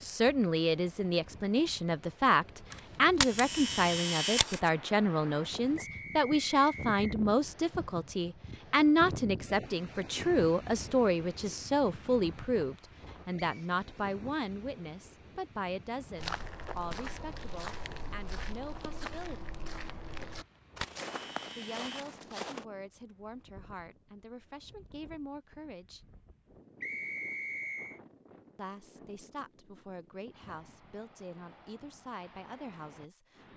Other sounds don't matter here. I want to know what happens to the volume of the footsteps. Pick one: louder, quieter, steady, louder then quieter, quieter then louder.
steady.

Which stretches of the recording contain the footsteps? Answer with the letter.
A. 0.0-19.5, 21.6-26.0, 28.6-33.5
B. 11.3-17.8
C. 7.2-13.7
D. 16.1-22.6
D.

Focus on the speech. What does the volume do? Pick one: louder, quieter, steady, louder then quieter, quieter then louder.
quieter.